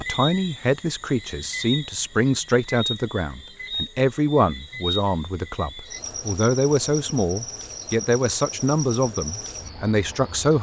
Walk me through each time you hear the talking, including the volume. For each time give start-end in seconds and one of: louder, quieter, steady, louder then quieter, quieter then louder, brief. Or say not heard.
0.0-10.5 steady.